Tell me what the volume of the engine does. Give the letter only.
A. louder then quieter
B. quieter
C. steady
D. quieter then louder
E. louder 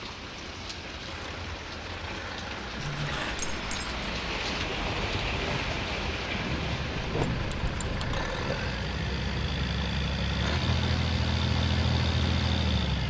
E.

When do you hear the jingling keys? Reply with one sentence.
The jingling keys can be heard from 2.8 to 3.9 s and from 7.0 to 8.6 s.